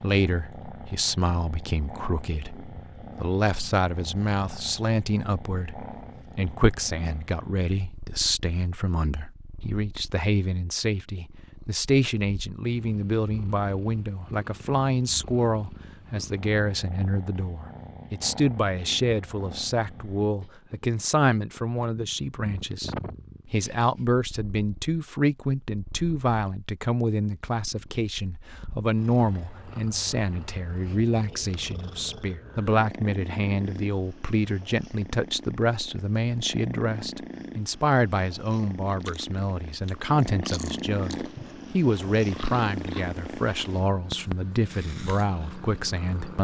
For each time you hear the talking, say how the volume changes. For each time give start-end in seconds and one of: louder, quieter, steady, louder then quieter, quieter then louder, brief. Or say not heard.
0.0-46.4 steady.